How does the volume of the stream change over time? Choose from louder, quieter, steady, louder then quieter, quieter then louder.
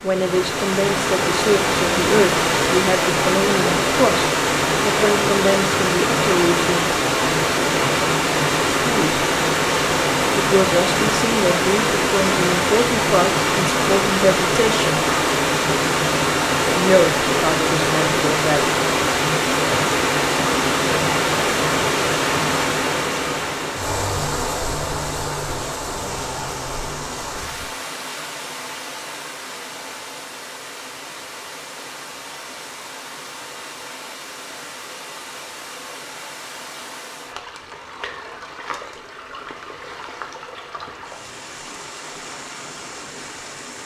quieter.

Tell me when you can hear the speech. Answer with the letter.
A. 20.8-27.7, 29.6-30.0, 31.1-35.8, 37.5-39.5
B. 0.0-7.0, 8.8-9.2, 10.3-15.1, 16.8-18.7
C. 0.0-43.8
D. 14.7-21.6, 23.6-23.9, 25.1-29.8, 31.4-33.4
B.